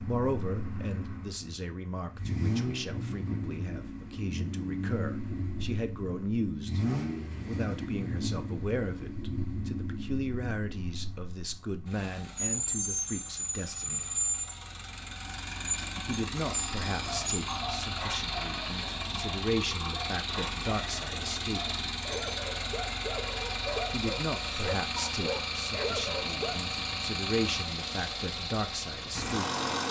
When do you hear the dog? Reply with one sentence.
You can hear the dog from 17.0 to 26.6 s.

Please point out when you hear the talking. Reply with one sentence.
The talking can be heard from 0.0 to 14.1 s, from 16.1 to 21.8 s and from 23.9 to 29.6 s.